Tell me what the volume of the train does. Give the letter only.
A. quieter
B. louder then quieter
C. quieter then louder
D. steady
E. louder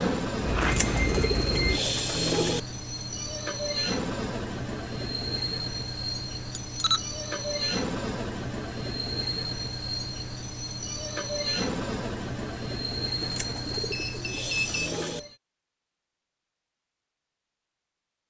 D.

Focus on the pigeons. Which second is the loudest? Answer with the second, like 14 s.
2 s.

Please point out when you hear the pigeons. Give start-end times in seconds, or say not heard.
0.6-2.6, 13.2-15.2.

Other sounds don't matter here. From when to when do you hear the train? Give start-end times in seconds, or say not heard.
0.0-15.3.